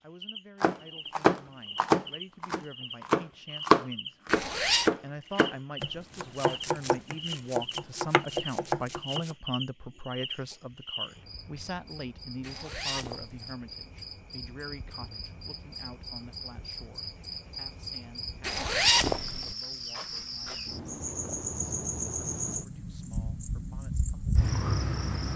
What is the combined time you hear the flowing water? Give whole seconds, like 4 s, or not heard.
not heard.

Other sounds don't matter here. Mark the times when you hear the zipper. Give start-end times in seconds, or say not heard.
4.2-4.9, 12.4-13.6, 18.4-19.6.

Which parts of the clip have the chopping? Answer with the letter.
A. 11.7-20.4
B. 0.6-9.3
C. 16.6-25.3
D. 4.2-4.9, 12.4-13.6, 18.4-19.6
B.